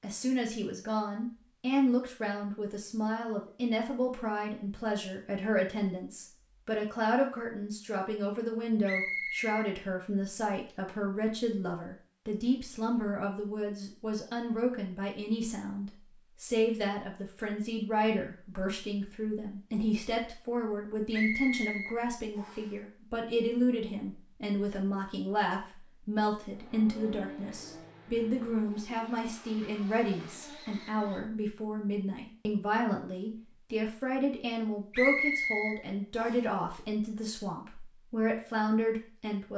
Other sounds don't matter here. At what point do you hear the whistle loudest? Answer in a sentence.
The loudest moment of the whistle is at 35 seconds.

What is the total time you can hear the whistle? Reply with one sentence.
The whistle can be heard for 4 seconds in total.